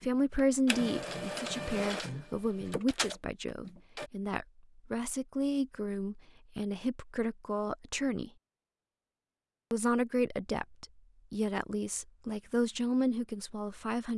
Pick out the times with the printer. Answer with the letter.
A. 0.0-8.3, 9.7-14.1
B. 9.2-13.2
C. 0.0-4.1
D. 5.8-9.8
C.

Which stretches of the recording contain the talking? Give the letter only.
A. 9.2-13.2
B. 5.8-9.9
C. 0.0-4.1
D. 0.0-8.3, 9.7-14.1
D.